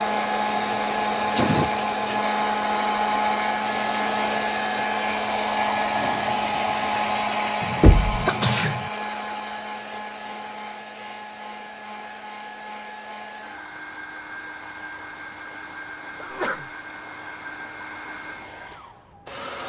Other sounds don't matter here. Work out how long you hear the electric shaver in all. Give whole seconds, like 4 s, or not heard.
not heard.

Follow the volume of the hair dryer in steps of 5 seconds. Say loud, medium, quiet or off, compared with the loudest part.
loud, loud, quiet, quiet.